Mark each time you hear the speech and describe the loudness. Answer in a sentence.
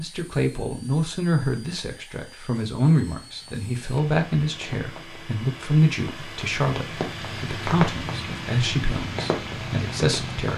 You can hear the speech from 0.0 to 10.5 s, at a steady volume.